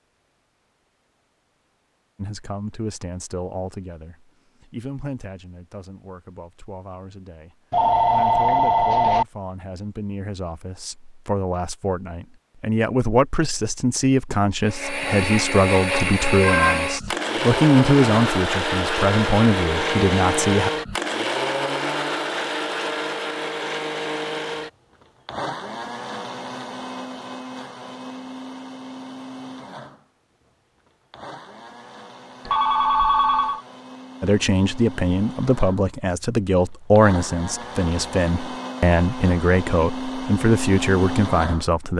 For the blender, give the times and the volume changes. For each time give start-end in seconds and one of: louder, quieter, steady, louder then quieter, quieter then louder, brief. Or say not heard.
14.6-41.8 quieter then louder.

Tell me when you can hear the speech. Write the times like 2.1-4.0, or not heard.
2.1-20.7, 34.2-41.9.